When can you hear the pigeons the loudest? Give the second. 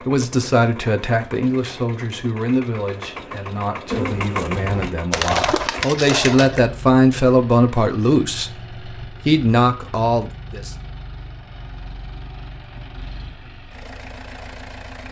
5 s.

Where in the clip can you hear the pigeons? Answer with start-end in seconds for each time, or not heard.
3.9-6.6.